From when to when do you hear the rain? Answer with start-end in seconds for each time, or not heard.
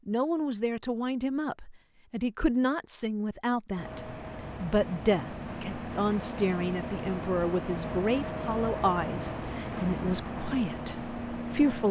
not heard.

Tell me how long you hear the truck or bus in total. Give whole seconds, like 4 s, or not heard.
8 s.